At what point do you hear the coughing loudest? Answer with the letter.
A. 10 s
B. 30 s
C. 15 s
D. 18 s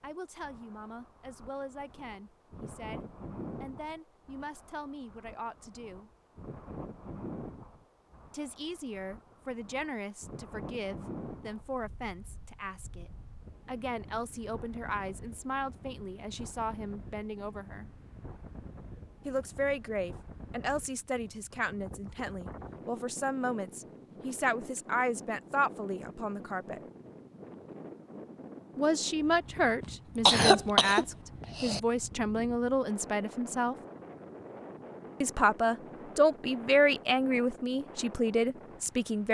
B.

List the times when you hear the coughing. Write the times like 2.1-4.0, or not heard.
29.8-31.8.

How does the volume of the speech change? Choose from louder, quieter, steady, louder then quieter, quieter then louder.
louder.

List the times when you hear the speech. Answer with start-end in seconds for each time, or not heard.
0.0-6.1, 8.3-17.9, 19.2-26.8, 28.8-33.8, 35.2-39.2.